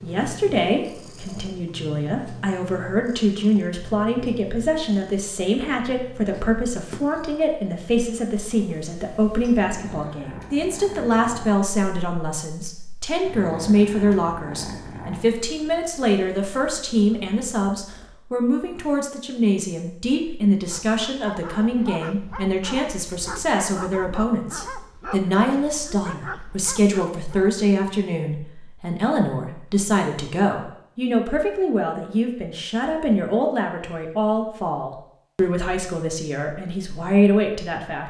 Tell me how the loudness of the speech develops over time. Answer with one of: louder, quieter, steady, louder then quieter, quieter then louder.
steady.